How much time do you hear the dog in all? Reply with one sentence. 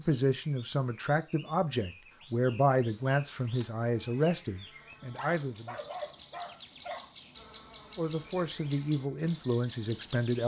The dog can be heard for 2 seconds in total.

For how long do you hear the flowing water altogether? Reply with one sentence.
You can't hear the flowing water here.